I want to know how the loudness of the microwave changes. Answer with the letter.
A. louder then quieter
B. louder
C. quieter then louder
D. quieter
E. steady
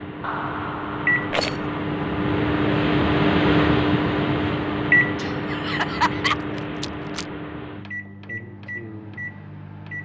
A.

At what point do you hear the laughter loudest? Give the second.
6 s.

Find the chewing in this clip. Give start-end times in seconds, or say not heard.
not heard.